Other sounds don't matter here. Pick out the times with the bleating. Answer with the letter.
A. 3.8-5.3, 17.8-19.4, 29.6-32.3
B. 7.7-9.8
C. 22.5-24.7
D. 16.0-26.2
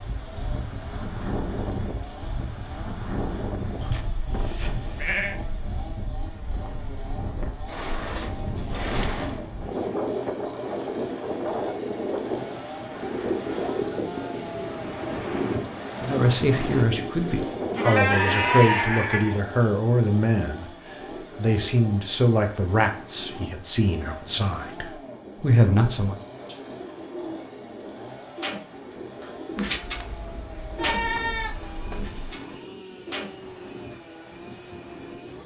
A.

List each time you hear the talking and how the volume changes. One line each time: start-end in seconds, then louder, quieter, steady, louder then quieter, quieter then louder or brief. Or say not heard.
16.0-26.2 steady.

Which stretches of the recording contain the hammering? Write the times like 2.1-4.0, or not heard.
not heard.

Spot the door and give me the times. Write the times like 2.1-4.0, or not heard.
7.7-9.8.